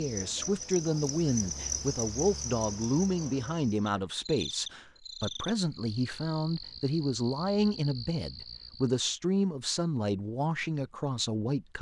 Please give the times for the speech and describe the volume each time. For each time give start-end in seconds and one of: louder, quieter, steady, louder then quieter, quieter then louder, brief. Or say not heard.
0.0-11.7 steady.